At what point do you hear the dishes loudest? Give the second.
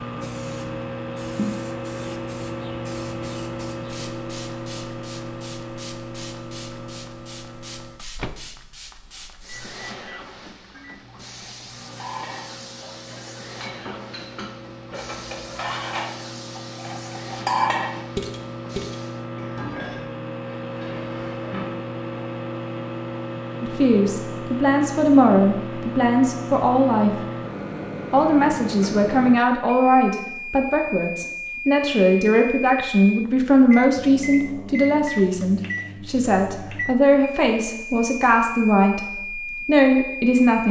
18 s.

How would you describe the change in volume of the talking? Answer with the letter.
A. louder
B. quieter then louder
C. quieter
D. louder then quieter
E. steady
E.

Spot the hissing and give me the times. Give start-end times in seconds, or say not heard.
0.0-19.2.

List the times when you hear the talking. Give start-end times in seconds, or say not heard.
23.6-27.2, 28.1-40.6.